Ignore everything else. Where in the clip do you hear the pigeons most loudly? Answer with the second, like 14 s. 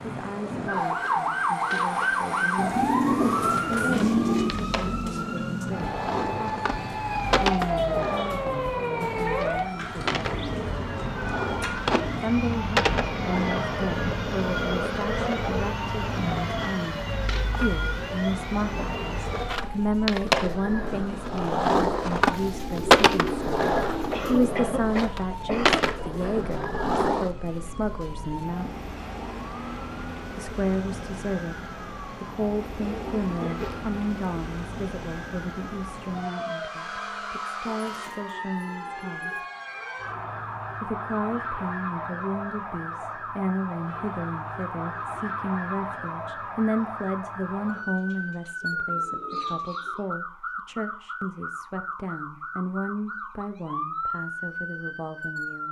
3 s.